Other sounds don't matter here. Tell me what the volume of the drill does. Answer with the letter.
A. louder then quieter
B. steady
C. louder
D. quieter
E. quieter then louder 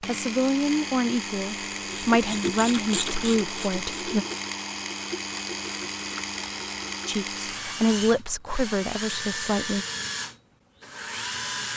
B.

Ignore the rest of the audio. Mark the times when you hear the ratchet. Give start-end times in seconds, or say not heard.
1.7-7.2.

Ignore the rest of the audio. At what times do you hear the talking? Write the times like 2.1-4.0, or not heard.
0.1-4.2, 7.0-9.8.